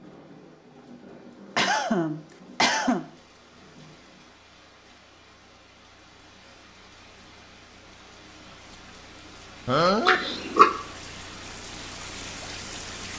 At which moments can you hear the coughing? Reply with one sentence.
The coughing can be heard from 1.6 to 3.0 s and from 9.7 to 10.7 s.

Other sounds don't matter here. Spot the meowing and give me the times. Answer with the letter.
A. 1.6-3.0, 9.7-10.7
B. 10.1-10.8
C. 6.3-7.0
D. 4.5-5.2
B.